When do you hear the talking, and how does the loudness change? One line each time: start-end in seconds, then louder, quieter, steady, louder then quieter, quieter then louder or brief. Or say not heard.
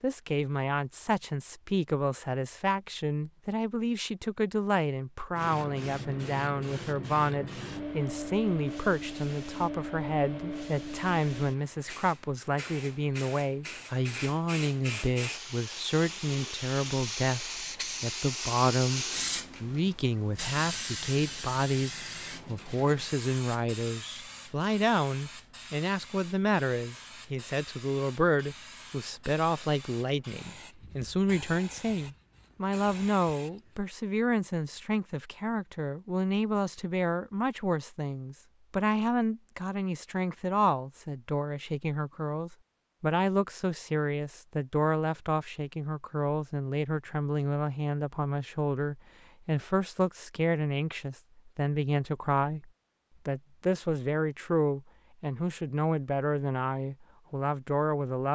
0.0-58.3 steady.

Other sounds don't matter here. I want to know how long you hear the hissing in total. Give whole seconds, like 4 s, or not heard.
28 s.